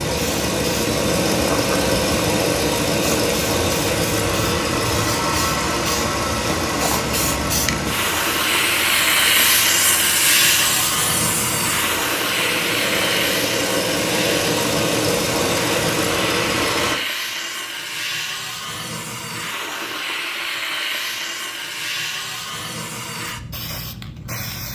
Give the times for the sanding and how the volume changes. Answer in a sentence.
You can't hear the sanding here.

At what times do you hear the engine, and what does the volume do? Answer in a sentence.
The engine can be heard from 0.0 to 16.9 s, getting quieter then louder.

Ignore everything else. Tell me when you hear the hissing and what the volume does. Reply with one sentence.
You can hear the hissing from 0.0 to 24.7 s, getting louder then quieter.